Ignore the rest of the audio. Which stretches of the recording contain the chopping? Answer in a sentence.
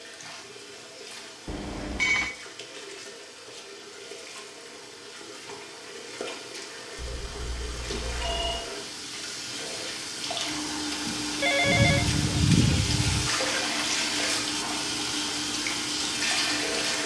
You can't hear the chopping here.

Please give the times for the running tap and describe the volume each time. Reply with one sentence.
The running tap can be heard from 0.0 to 17.0 s, getting louder.